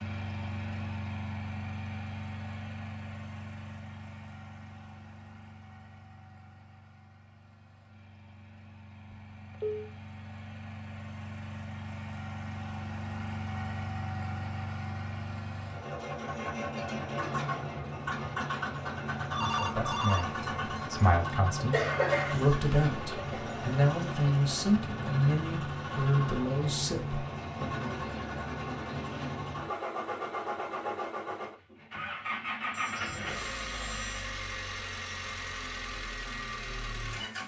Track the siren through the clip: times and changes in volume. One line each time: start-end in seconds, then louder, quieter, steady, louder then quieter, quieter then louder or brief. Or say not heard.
not heard.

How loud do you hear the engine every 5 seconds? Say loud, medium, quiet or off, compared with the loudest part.
medium, quiet, medium, loud, loud, loud, loud, loud.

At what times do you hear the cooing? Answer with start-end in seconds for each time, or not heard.
not heard.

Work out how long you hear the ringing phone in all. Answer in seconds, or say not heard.
4 s.